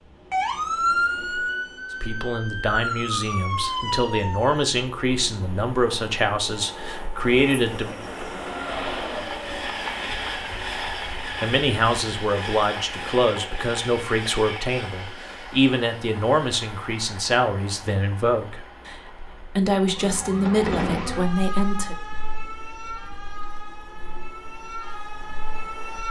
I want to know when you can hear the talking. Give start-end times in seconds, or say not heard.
2.0-8.0, 11.4-21.9.